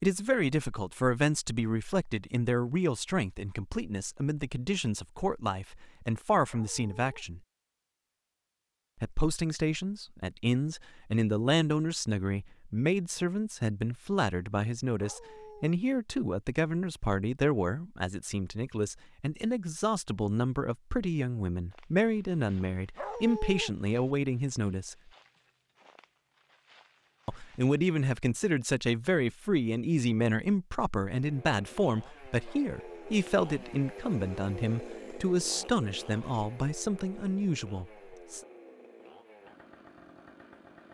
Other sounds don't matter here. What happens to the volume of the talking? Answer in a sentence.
The volume of the talking stays about the same.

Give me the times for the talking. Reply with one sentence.
You can hear the talking from 0.0 to 7.4 s, from 9.0 to 24.9 s and from 27.2 to 38.4 s.